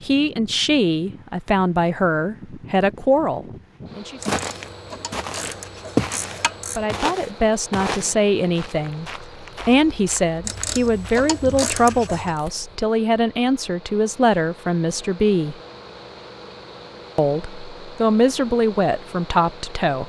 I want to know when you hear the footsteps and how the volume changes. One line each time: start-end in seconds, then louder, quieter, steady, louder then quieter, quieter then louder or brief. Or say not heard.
4.2-12.8 quieter.